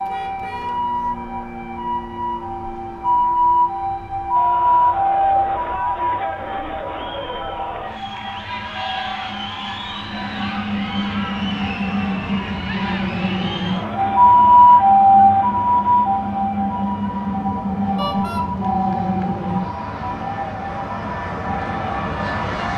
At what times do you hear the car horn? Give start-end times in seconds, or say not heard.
0.1-0.9, 17.9-18.4.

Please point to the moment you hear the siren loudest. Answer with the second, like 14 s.
15 s.